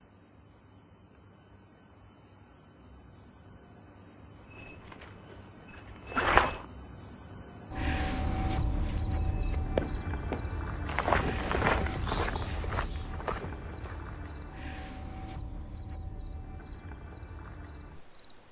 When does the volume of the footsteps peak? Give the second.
6 s.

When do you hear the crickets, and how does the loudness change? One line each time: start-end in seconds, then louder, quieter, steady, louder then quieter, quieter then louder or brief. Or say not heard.
0.0-18.4 louder then quieter.